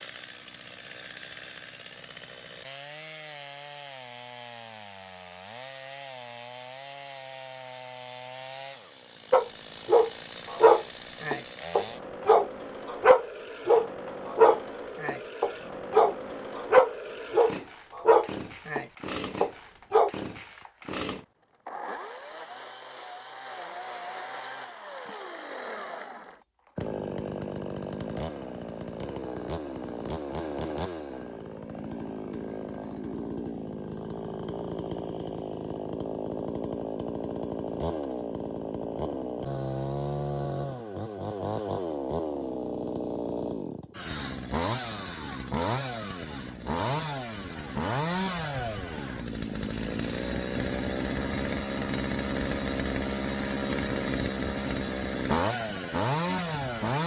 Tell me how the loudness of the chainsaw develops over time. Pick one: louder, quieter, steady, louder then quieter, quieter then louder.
louder.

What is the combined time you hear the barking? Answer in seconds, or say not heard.
11 s.